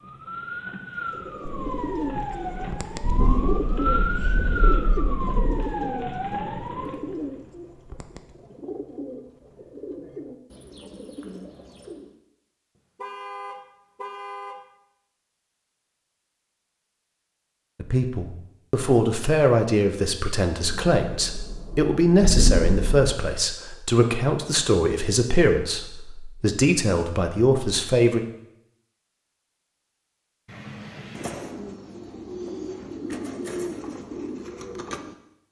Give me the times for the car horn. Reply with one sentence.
The car horn can be heard from 3.1 to 4.4 s, from 12.9 to 14.6 s and from 30.4 to 31.4 s.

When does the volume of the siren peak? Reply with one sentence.
The volume of the siren peaks at 4 seconds.